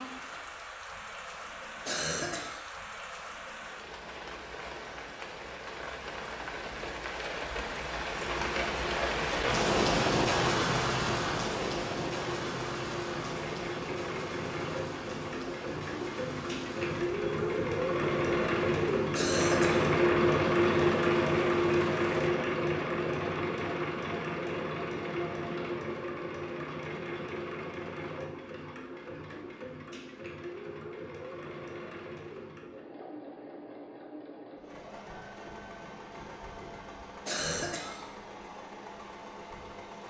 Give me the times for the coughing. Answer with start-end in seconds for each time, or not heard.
1.9-2.6, 19.1-19.9, 37.2-38.0.